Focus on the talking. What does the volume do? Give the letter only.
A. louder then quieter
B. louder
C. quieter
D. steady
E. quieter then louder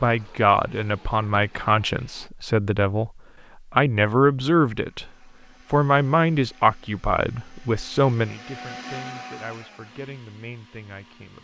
C.